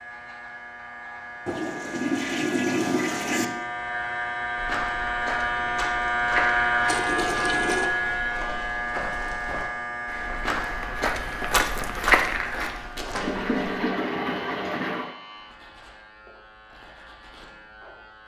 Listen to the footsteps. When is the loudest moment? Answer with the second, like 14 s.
12 s.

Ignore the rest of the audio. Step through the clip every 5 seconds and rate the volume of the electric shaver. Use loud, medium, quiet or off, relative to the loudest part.
medium, loud, medium, quiet.